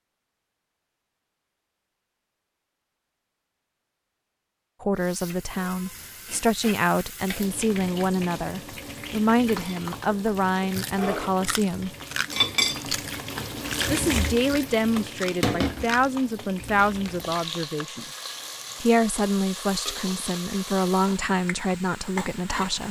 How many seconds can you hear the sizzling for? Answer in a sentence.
You can hear the sizzling for 18 seconds altogether.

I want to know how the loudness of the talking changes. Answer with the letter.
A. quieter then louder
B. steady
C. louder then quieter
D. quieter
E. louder
B.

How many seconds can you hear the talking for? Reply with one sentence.
You can hear the talking for 15 seconds altogether.